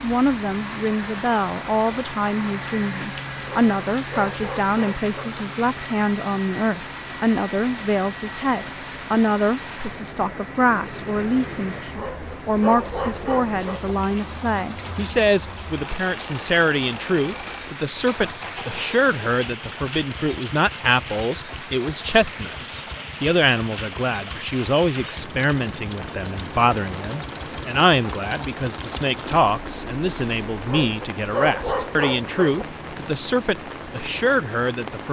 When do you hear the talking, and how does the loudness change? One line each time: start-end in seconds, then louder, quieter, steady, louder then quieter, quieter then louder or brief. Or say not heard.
0.0-35.0 steady.